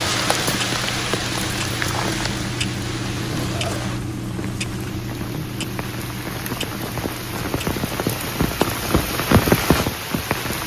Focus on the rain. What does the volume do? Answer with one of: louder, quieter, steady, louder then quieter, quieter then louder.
quieter then louder.